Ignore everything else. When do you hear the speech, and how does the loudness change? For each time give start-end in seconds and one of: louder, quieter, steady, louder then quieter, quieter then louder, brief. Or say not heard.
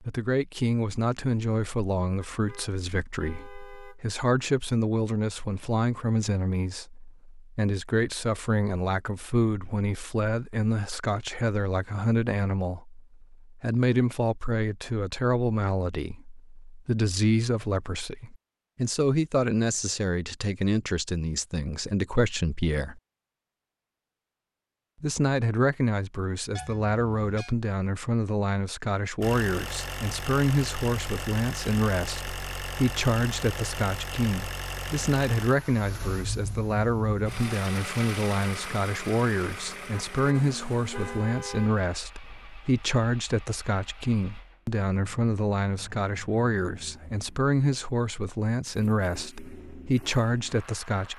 0.0-23.0 steady
25.0-51.1 steady.